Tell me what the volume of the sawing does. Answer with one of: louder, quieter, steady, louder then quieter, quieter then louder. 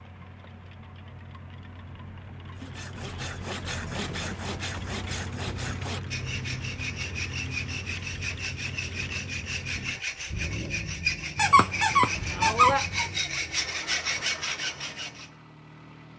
louder.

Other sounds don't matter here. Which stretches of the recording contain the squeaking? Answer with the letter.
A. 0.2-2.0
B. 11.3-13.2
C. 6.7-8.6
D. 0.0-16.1
B.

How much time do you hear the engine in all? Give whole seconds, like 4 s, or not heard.
16 s.